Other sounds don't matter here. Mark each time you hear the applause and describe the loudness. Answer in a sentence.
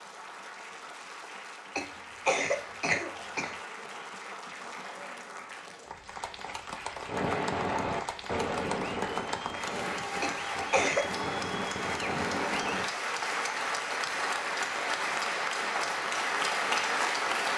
You can hear the applause from 0.0 to 17.5 s, getting louder.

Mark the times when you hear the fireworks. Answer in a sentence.
The fireworks can be heard from 7.0 to 12.9 s.